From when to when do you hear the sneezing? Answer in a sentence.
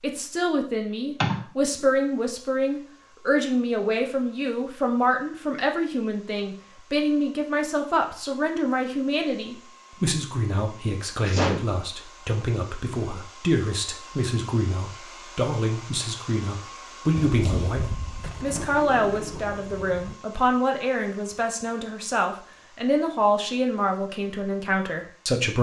You can hear the sneezing from 1.2 to 1.9 s, from 11.2 to 11.7 s and from 17.1 to 18.3 s.